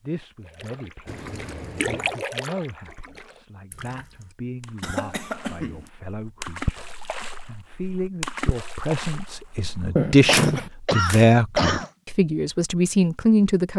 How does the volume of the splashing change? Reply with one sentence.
The loudness of the splashing goes down, then up.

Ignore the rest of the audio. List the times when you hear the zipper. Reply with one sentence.
You can hear the zipper from 9.9 to 10.7 s.